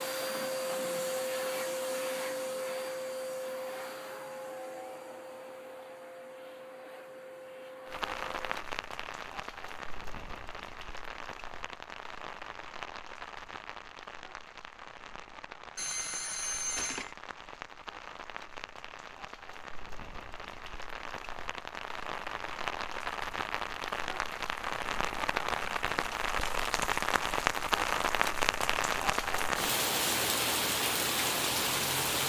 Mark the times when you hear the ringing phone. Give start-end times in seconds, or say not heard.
15.8-17.1.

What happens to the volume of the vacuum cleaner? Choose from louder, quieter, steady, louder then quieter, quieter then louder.
quieter.